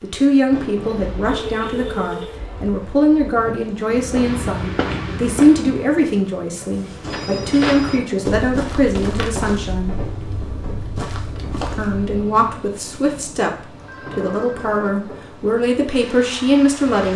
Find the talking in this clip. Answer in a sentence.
You can hear the talking from 0.0 to 9.9 s and from 11.8 to 17.1 s.